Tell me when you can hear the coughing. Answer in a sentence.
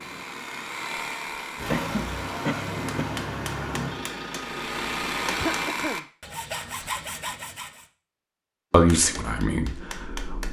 The coughing can be heard from 1.7 to 3.1 s and from 5.2 to 6.0 s.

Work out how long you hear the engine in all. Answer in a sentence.
The engine can be heard for 4 seconds in total.